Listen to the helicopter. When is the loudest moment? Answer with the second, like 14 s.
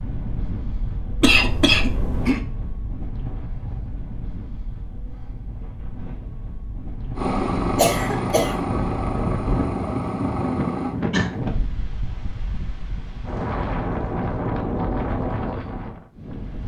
8 s.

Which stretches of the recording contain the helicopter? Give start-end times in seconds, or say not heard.
7.2-10.9.